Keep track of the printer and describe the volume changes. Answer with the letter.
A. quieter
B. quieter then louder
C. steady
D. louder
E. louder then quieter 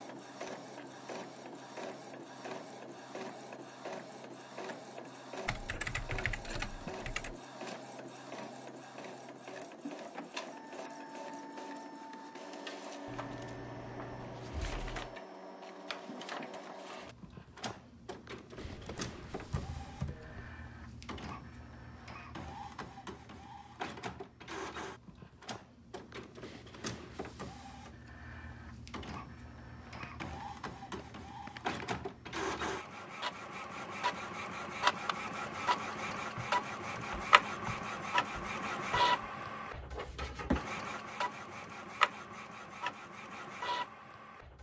D.